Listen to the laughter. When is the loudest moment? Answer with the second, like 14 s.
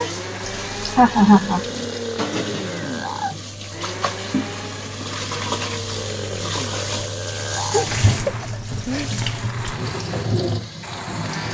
1 s.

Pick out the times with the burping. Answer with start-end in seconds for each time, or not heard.
1.4-3.4, 6.0-7.9.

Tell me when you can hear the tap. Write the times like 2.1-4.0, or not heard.
0.0-11.5.